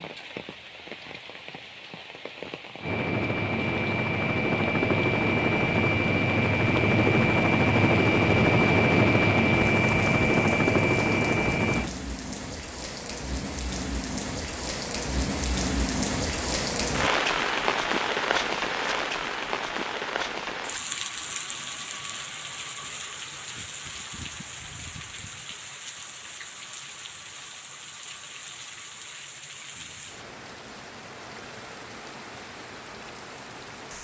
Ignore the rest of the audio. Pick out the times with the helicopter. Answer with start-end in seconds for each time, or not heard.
2.8-11.9.